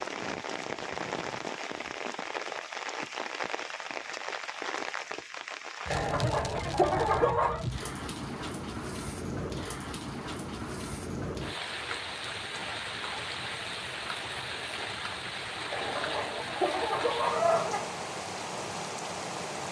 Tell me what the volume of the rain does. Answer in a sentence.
The loudness of the rain stays about the same.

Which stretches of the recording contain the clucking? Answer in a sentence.
The clucking can be heard from 5.9 to 7.6 s and from 15.7 to 17.9 s.